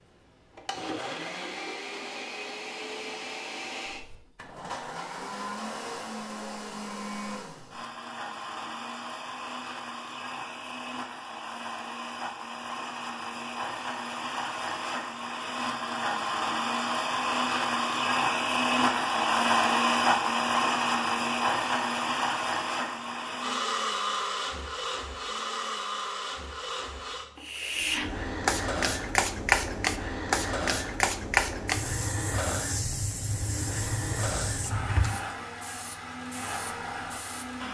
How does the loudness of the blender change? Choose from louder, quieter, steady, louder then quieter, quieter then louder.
louder then quieter.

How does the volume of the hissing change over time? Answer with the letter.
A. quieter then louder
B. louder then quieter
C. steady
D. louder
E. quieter
E.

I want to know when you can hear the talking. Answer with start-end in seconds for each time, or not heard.
not heard.